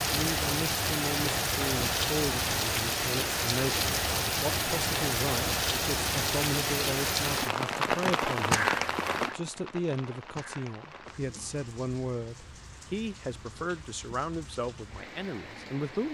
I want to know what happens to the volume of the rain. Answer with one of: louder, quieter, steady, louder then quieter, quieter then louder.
quieter.